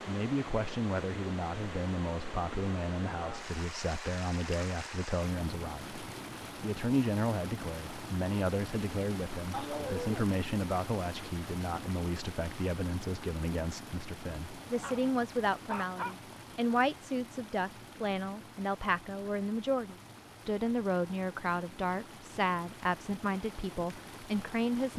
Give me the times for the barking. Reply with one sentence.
The barking can be heard from 9.5 to 10.2 s and from 14.8 to 16.1 s.